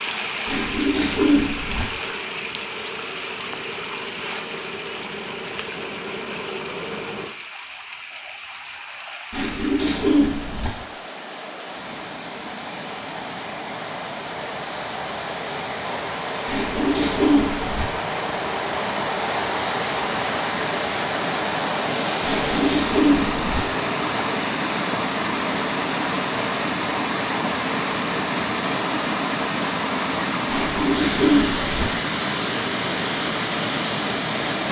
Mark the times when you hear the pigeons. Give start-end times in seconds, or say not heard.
0.5-1.9, 9.3-10.7, 16.4-17.9, 22.2-23.6, 30.4-31.9.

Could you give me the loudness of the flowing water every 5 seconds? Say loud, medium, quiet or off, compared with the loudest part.
medium, quiet, medium, loud, loud, loud, loud.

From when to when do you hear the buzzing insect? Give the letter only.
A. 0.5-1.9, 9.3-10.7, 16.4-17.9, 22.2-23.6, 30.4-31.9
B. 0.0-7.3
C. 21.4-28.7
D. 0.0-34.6
B.